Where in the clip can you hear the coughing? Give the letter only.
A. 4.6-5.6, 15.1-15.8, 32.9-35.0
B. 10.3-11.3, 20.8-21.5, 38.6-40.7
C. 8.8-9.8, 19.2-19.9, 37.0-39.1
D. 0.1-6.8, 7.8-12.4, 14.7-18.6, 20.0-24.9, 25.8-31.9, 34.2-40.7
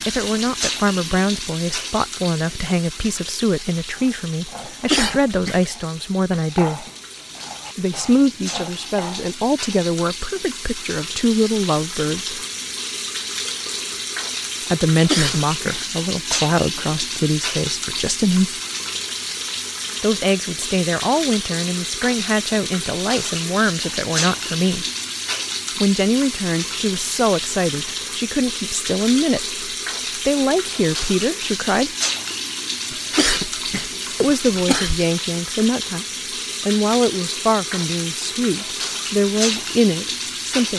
A.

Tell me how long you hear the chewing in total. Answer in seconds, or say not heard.
not heard.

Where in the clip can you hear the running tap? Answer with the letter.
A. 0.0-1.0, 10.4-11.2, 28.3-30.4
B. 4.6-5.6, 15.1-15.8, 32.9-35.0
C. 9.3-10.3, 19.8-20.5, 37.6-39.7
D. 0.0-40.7
D.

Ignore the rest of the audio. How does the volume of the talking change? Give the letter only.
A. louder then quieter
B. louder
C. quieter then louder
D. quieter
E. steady
E.